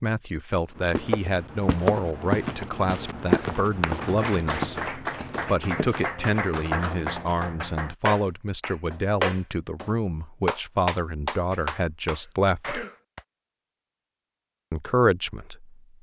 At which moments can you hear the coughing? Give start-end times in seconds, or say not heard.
11.5-12.9.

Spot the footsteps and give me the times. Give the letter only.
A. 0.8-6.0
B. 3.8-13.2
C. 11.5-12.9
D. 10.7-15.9
A.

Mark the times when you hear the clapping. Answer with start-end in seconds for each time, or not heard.
3.8-13.2.